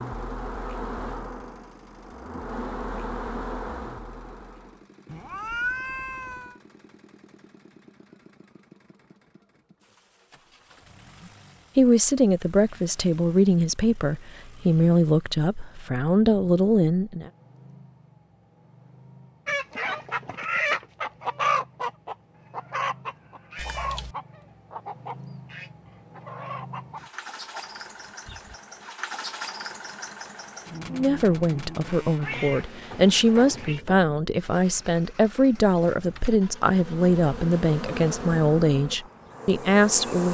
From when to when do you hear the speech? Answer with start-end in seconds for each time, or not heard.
11.8-17.3, 30.9-40.2.